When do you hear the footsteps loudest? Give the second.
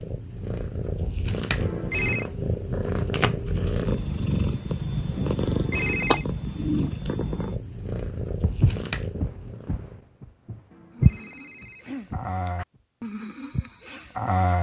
11 s.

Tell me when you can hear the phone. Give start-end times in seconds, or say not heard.
1.6-2.2, 5.4-6.2, 10.7-12.7.